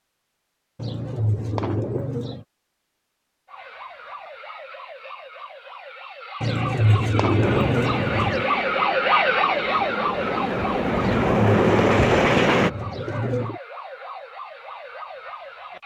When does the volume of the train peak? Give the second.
12 s.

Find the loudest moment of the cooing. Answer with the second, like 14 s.
7 s.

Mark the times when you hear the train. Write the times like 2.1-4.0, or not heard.
7.4-12.7.